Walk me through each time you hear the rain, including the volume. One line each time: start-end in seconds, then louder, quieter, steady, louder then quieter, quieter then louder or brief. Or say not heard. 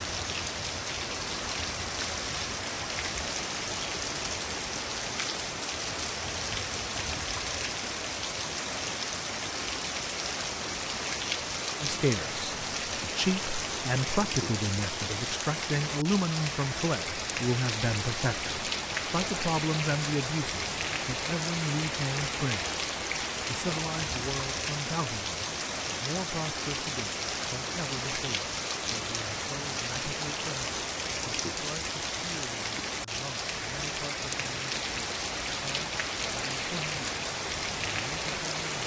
0.0-38.8 steady.